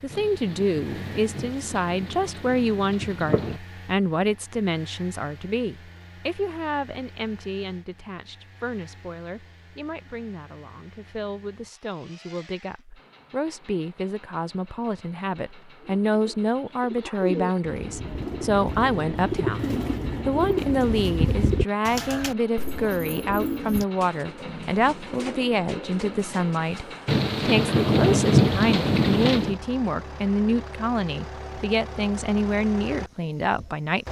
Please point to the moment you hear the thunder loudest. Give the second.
28 s.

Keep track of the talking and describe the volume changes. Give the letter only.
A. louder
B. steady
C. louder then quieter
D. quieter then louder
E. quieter
D.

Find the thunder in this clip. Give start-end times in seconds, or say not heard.
0.1-3.6, 27.1-29.6.